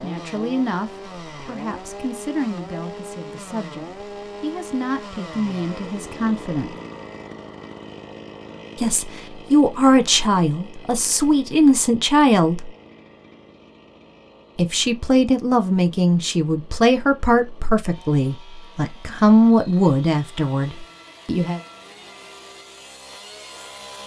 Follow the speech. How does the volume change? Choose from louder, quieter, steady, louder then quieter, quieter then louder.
louder.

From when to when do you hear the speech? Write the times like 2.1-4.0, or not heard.
0.0-6.8, 8.8-12.7, 14.6-21.6.